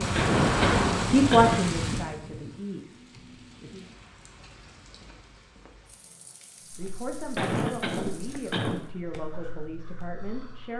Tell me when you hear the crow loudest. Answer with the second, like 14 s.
1 s.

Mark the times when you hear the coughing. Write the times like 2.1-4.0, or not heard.
0.1-1.6, 7.3-8.8.